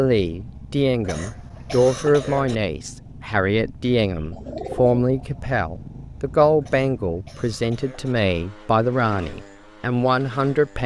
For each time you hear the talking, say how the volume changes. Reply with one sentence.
The talking can be heard from 0.0 to 10.8 s, at a steady volume.